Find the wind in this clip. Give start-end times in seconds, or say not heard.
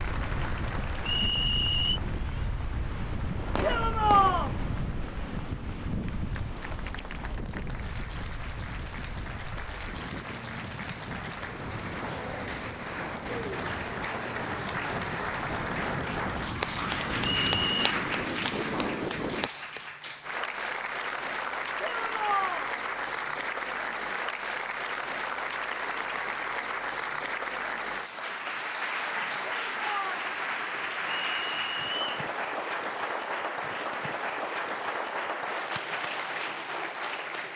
0.0-19.5.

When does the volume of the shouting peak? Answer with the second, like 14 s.
4 s.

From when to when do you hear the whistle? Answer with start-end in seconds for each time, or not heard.
1.1-2.0, 17.2-17.9, 31.1-32.2.